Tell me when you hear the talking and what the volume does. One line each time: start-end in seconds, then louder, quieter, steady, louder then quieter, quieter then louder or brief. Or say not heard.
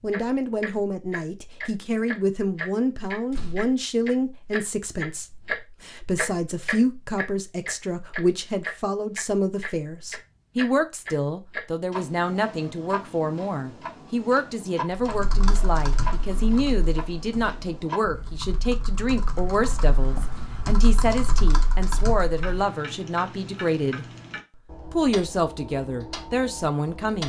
0.0-24.1 steady
24.9-27.2 brief.